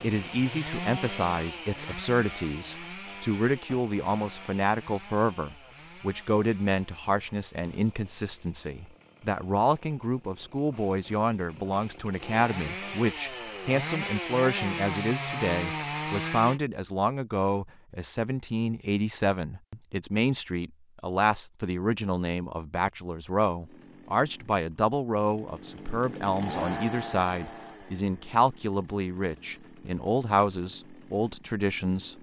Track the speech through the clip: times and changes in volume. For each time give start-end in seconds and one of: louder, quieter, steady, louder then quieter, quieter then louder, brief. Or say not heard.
0.0-32.1 steady.